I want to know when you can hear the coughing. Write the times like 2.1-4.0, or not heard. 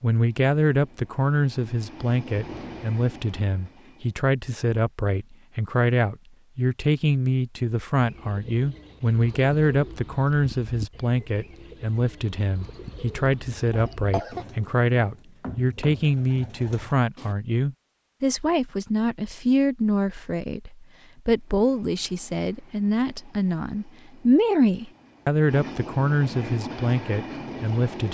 13.7-14.4.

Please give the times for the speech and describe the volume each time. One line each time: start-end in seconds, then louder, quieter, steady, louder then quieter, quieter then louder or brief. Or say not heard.
0.0-28.0 steady.